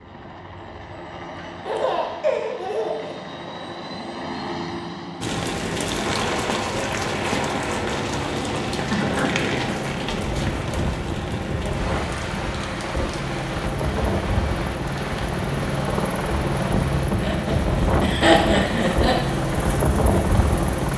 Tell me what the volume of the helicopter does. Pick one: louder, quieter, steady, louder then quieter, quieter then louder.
louder.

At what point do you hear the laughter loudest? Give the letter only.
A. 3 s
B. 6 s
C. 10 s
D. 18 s
D.